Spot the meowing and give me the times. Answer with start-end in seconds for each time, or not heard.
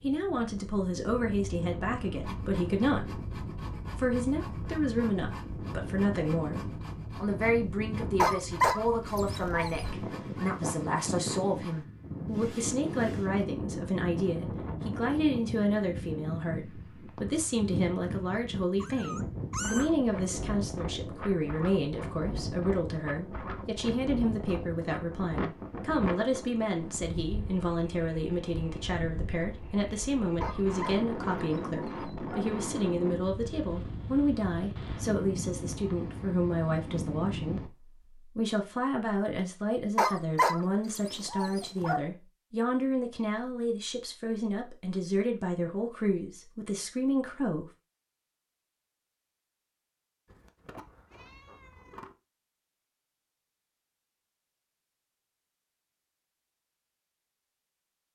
18.8-19.9, 50.2-52.1.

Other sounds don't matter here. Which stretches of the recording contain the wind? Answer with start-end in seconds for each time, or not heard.
0.0-37.7.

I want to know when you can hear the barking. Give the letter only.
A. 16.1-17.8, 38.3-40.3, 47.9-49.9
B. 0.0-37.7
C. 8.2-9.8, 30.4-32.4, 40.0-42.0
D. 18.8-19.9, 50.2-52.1
C.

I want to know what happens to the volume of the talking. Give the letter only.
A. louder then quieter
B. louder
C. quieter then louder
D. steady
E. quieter
D.